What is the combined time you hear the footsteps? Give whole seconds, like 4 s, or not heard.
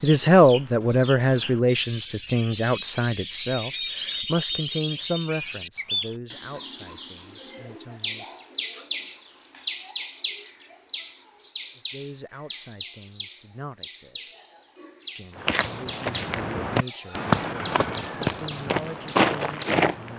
5 s.